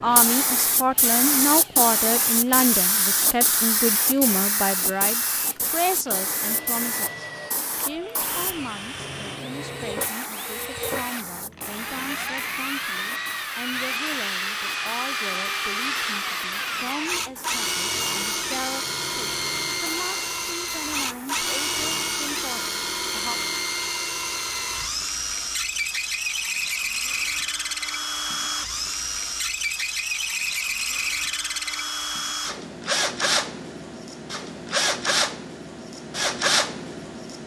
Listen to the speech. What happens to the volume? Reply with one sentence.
The volume of the speech goes down.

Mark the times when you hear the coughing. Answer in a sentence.
The coughing can't be heard in this clip.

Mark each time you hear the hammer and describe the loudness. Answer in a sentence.
You can't hear the hammer here.